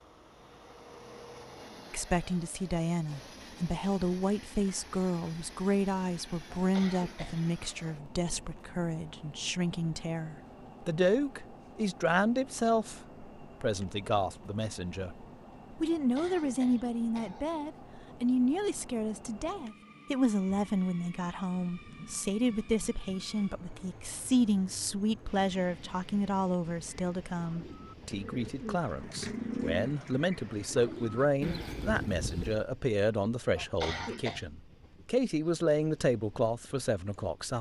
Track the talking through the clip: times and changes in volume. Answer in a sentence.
The talking can be heard from 1.9 to 37.5 s, at a steady volume.